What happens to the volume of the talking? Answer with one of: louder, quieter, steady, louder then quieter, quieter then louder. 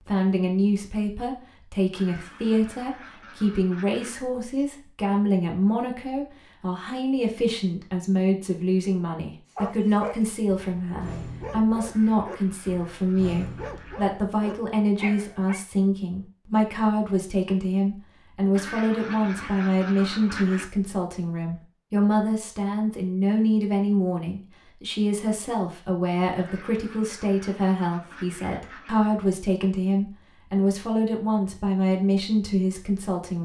steady.